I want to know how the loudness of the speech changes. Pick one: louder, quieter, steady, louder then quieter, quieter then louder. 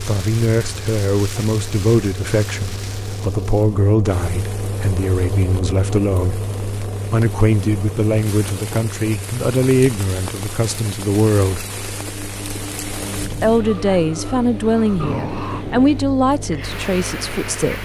steady.